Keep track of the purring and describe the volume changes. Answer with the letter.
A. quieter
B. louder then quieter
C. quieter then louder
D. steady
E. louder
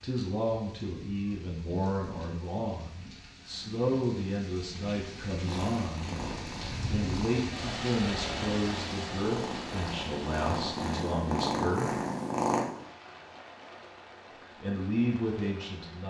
E.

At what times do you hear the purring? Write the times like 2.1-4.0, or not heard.
5.3-12.7.